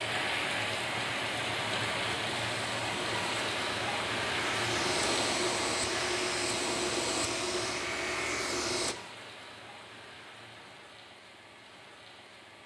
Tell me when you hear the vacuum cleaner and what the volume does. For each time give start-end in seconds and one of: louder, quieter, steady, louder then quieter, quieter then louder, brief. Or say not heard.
2.4-8.9 louder.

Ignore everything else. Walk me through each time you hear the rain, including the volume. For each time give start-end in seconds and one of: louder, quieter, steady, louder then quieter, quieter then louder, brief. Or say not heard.
0.0-12.6 quieter.